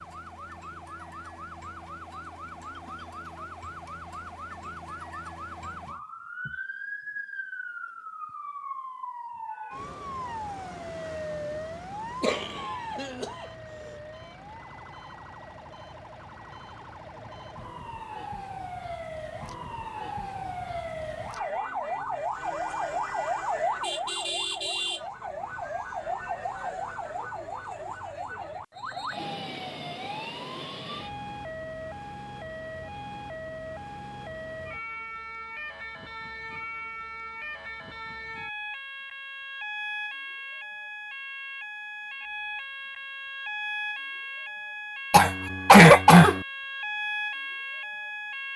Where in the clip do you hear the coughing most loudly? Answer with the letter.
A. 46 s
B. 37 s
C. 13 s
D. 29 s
A.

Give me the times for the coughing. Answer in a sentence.
You can hear the coughing from 12.2 to 13.4 s and from 45.1 to 46.4 s.